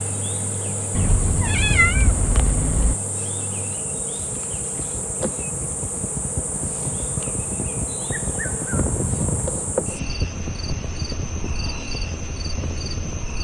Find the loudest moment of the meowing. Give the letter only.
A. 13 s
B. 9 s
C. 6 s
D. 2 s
D.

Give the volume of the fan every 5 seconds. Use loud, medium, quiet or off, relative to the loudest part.
medium, loud, loud.